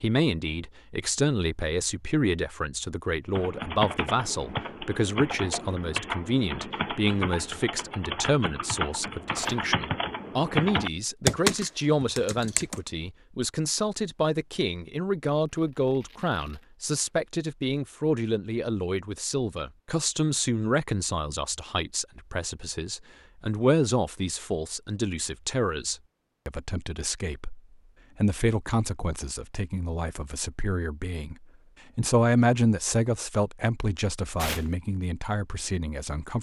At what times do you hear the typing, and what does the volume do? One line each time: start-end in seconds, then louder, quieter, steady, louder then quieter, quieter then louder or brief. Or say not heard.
3.3-12.8 louder.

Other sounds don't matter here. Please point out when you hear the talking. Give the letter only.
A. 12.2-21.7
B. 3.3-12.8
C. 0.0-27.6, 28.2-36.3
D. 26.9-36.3
C.